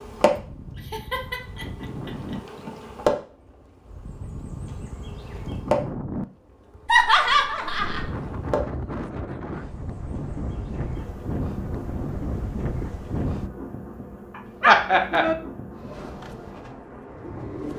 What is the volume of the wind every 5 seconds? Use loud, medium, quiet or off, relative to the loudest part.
medium, loud, loud, off.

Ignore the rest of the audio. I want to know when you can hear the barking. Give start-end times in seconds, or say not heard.
14.3-15.3.